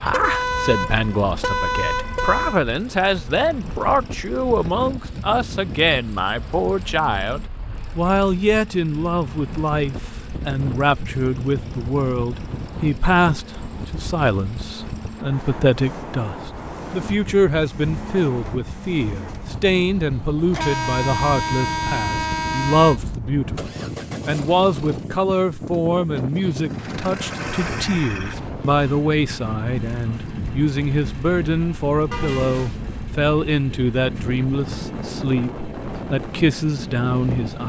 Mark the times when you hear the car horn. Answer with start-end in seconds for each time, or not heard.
0.1-2.6, 20.5-23.0, 32.1-32.9.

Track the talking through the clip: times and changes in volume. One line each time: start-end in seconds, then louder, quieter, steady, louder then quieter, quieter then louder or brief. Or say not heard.
0.0-37.6 steady.